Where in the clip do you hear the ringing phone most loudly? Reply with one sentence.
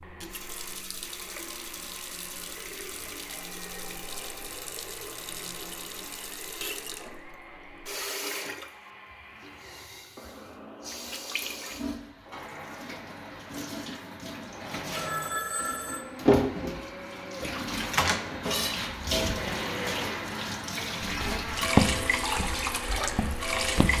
The loudest moment of the ringing phone is at 15 seconds.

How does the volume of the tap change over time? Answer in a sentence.
The loudness of the tap goes up.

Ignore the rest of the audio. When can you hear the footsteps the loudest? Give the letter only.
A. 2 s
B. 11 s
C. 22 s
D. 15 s
C.